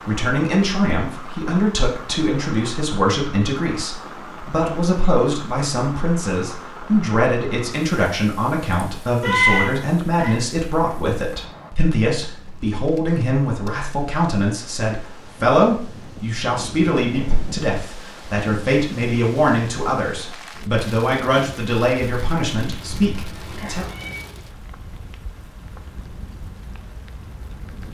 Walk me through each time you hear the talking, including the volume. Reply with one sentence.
You can hear the talking from 0.1 to 23.9 s, at a steady volume.